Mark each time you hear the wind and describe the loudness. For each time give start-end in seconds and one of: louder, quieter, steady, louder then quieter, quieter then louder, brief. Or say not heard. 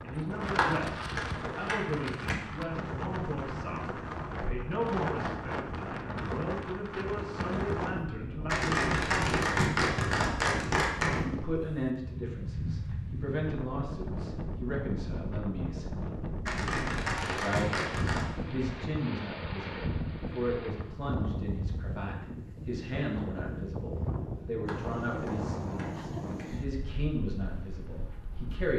0.0-28.7 steady.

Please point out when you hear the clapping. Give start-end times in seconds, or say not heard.
0.6-2.4, 8.4-11.2, 16.4-18.2, 24.6-26.4.